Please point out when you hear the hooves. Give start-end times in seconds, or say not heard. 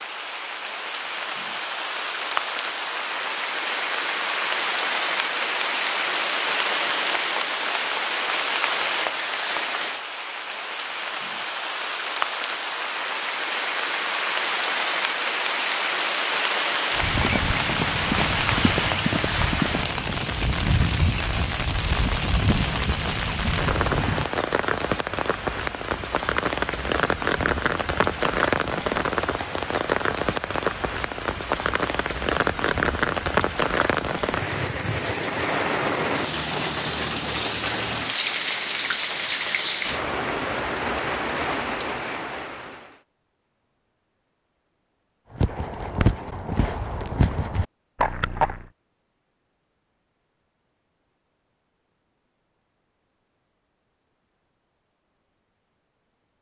16.9-24.2, 45.3-48.6.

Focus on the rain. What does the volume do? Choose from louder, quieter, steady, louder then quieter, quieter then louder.
steady.